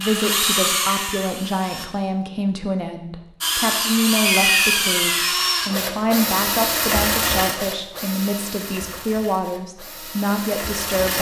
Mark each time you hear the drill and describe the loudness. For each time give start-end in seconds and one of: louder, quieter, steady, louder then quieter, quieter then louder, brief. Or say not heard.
0.0-1.9 brief
3.4-11.1 quieter.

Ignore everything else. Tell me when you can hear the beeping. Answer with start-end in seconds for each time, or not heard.
4.2-5.3.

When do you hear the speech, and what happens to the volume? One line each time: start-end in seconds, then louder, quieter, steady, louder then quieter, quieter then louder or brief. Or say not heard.
0.0-11.1 steady.